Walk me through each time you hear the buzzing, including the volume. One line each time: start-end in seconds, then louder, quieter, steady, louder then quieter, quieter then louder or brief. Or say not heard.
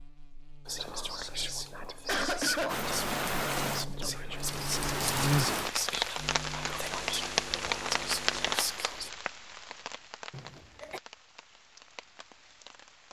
0.0-8.6 louder then quieter.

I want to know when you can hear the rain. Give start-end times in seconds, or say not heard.
2.6-13.0.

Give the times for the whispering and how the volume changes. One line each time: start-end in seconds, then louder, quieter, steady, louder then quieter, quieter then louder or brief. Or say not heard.
0.7-9.1 steady.